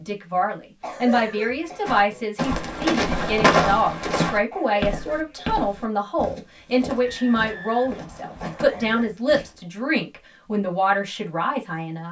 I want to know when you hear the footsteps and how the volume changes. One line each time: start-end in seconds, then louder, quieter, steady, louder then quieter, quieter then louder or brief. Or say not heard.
1.9-9.6 quieter.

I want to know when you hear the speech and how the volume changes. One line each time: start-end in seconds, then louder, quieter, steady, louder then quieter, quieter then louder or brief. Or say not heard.
0.0-12.0 steady.